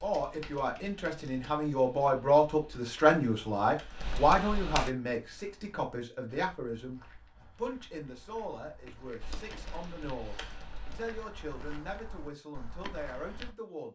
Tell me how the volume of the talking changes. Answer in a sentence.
The loudness of the talking goes down.